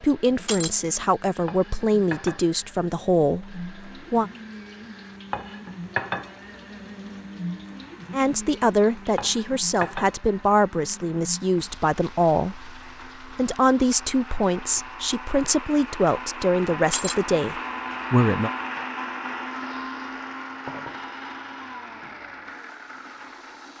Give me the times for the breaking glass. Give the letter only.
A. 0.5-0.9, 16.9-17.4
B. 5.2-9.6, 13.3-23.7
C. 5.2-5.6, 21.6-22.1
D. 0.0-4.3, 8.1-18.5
A.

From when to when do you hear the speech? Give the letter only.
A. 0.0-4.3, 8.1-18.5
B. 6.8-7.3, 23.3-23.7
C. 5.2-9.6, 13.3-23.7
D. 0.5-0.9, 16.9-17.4
A.